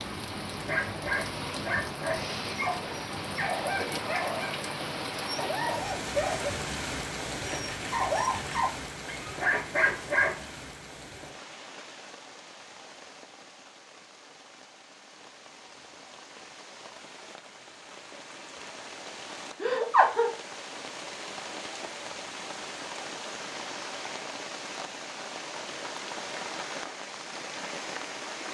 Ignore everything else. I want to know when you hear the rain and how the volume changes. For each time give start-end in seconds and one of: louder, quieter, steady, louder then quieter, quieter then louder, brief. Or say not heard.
0.0-28.4 quieter then louder.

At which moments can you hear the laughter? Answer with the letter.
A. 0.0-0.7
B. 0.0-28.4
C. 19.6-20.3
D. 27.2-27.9
C.